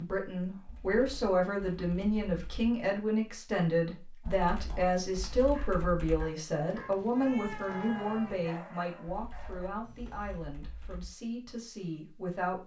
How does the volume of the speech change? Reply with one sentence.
The loudness of the speech goes down.